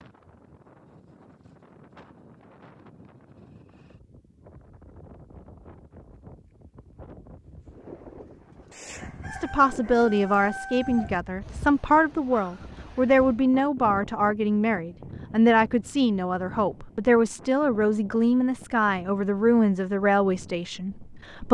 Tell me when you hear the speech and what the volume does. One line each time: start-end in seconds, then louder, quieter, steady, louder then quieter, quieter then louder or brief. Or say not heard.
9.3-21.4 steady.